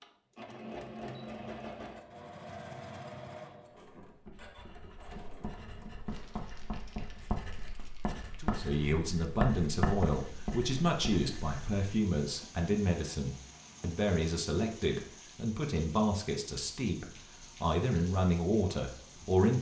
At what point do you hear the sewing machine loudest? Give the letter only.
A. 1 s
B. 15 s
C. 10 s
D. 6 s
A.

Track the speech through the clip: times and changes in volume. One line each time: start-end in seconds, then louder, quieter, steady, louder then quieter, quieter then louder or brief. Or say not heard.
8.4-19.5 steady.